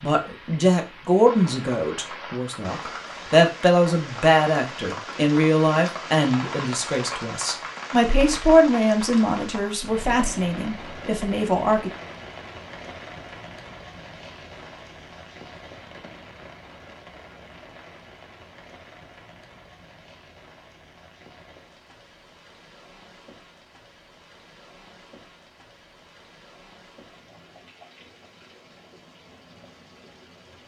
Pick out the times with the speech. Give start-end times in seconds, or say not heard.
0.0-11.9.